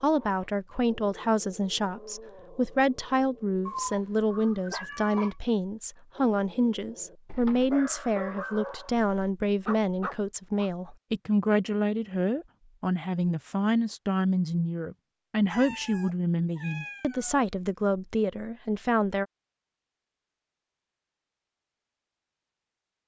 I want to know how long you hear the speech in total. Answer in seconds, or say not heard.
19 s.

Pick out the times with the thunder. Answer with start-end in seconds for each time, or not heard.
not heard.